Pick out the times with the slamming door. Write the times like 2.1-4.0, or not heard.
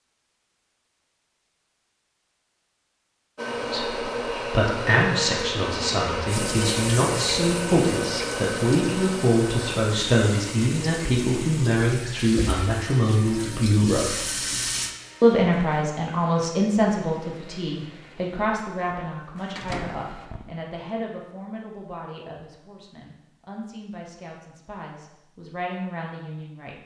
19.6-20.5.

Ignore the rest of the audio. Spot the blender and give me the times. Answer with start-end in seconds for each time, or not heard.
3.4-20.3.